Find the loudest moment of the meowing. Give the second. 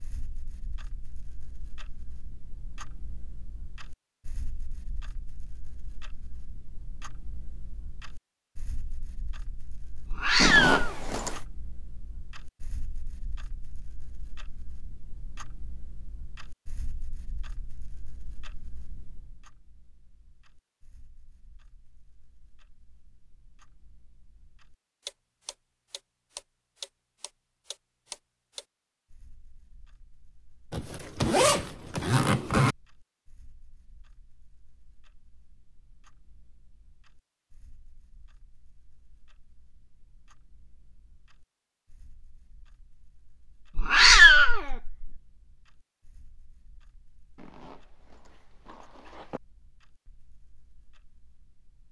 44 s.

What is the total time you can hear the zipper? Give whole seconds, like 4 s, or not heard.
5 s.